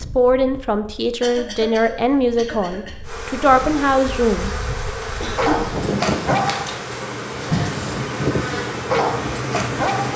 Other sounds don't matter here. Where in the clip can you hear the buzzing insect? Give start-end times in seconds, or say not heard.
3.0-10.1.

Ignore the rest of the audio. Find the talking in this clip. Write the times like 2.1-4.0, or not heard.
0.0-4.5.